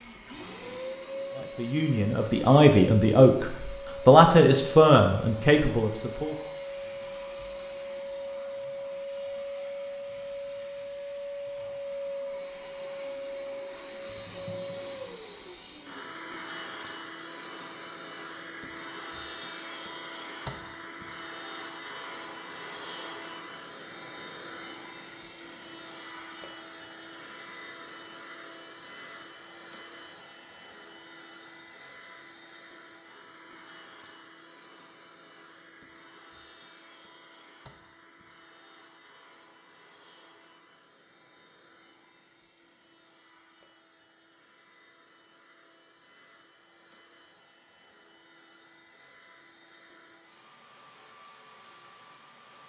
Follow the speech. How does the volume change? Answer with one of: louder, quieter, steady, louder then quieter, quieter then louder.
louder then quieter.